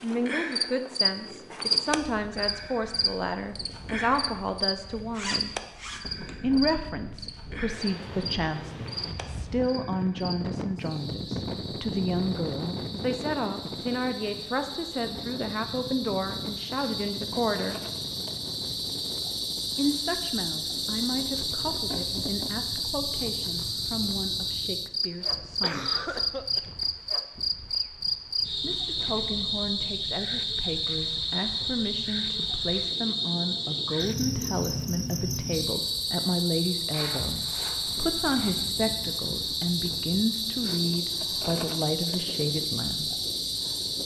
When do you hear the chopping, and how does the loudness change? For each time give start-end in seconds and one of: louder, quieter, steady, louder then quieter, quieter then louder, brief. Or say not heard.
not heard.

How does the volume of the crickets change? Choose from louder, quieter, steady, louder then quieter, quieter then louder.
quieter then louder.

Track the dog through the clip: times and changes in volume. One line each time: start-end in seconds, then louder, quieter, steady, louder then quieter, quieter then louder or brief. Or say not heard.
not heard.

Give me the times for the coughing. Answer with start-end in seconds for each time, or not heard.
25.2-26.6.